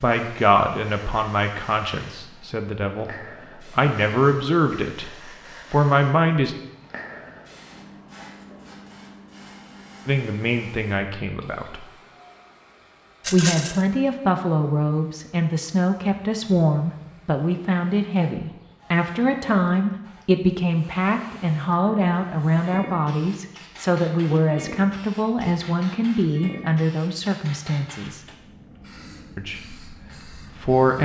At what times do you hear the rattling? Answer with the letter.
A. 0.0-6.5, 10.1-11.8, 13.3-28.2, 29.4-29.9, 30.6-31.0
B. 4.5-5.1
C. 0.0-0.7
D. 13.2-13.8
D.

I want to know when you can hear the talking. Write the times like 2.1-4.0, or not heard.
0.0-6.5, 10.1-11.8, 13.3-28.2, 29.4-29.9, 30.6-31.0.